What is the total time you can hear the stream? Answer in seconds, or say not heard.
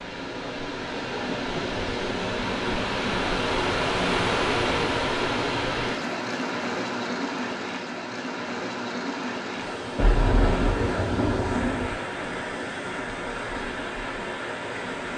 15 s.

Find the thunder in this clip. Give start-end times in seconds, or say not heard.
9.9-11.9.